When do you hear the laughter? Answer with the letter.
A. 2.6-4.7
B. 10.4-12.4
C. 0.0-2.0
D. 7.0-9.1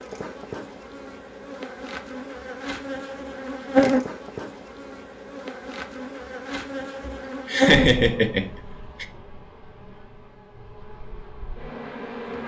D.